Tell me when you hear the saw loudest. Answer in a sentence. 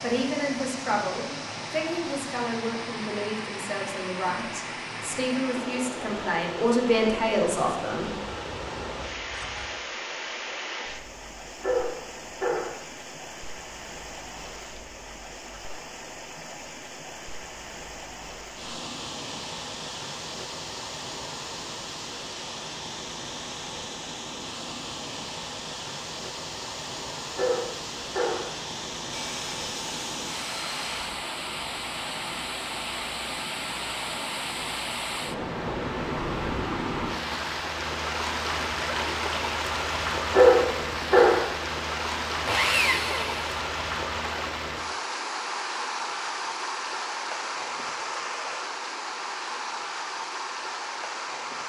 The volume of the saw peaks at 43 seconds.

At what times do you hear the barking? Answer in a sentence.
The barking can be heard from 11.6 to 12.8 s, from 27.4 to 28.5 s and from 40.3 to 41.5 s.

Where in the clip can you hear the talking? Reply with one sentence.
You can hear the talking from 0.0 to 8.1 s.